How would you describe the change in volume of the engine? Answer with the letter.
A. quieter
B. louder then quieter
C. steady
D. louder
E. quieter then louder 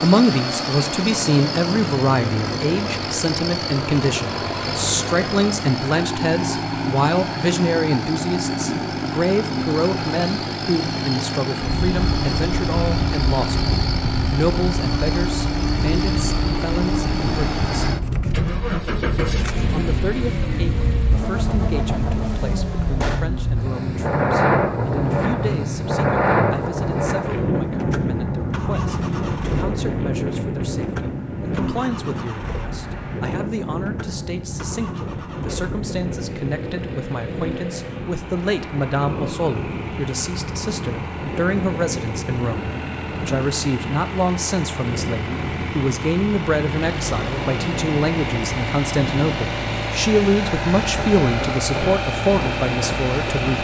E.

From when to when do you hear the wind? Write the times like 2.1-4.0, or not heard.
11.8-53.5.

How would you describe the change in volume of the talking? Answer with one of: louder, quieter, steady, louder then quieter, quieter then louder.
quieter then louder.